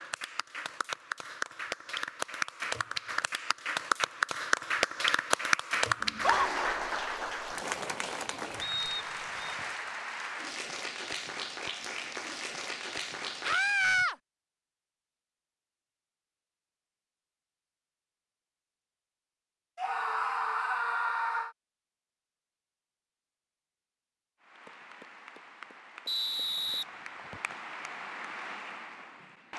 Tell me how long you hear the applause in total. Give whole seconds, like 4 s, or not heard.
19 s.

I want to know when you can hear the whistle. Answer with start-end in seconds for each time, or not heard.
8.6-9.6, 26.1-27.6.